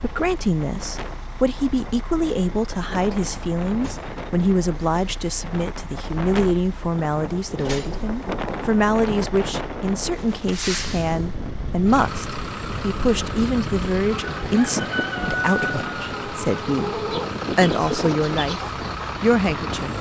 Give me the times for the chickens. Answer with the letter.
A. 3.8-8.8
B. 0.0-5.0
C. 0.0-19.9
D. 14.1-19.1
D.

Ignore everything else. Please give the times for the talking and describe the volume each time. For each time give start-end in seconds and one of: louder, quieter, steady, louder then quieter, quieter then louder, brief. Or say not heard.
0.0-19.9 steady.